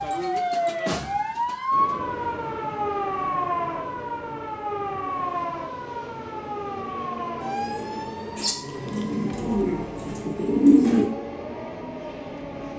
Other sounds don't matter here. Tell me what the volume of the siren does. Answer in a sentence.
The volume of the siren goes down.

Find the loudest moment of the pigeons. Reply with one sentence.
The loudest moment of the pigeons is at 11 seconds.